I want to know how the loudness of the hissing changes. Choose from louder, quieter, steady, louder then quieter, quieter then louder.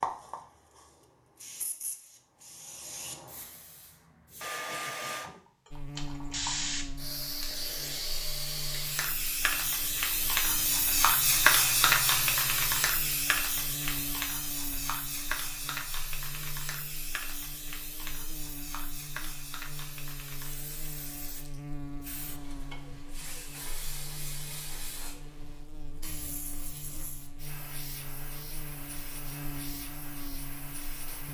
louder then quieter.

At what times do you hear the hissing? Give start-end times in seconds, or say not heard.
0.0-31.2.